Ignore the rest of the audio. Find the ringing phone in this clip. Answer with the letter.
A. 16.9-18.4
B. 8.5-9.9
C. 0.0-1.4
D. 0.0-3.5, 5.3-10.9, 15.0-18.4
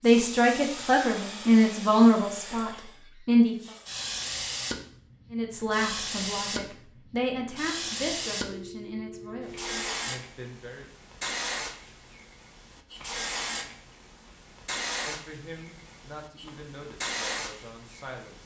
B.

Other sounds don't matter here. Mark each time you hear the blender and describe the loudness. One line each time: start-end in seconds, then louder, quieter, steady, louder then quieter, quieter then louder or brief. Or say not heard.
not heard.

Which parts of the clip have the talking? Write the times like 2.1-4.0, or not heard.
0.0-3.5, 5.3-10.9, 15.0-18.4.